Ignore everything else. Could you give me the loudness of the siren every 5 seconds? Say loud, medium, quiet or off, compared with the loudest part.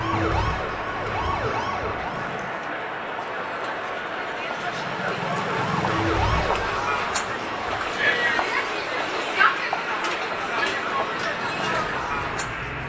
loud, loud, medium.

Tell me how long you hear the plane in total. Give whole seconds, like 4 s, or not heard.
13 s.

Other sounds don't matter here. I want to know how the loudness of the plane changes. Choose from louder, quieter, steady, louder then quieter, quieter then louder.
steady.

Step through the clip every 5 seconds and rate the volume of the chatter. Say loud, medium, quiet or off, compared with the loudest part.
medium, loud, loud.